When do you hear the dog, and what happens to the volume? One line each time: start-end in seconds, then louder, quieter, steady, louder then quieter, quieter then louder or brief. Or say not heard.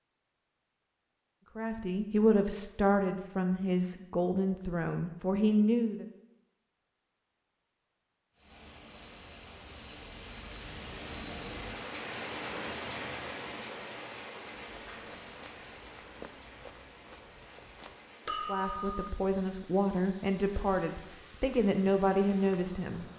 not heard.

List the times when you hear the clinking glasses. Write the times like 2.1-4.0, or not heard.
18.2-19.0.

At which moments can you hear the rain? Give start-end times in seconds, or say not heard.
8.3-23.1.